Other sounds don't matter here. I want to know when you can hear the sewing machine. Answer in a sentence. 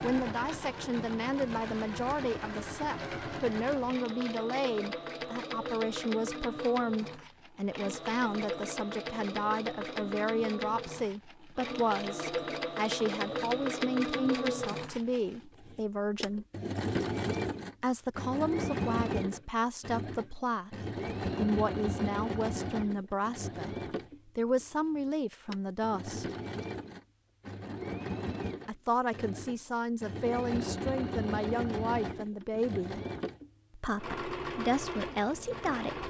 You can hear the sewing machine from 0.0 to 36.0 s.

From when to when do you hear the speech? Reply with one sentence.
You can hear the speech from 0.0 to 16.4 s, from 17.8 to 26.2 s, from 28.6 to 33.0 s and from 33.8 to 36.0 s.